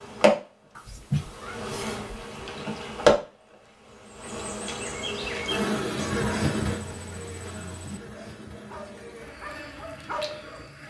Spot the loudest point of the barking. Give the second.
10 s.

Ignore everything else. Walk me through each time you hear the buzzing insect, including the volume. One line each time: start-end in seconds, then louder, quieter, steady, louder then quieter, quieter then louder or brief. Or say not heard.
0.0-10.8 louder then quieter.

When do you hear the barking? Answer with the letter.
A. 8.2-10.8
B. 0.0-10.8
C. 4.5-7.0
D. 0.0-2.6
A.